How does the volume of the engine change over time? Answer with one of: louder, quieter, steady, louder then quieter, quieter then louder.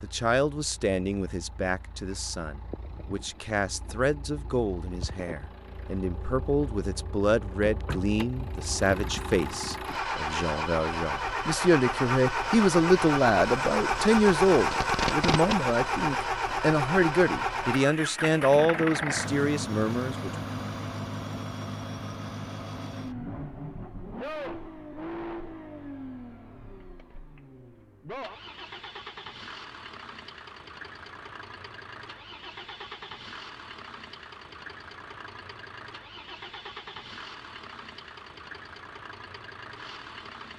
louder then quieter.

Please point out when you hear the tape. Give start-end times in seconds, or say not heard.
14.7-15.6.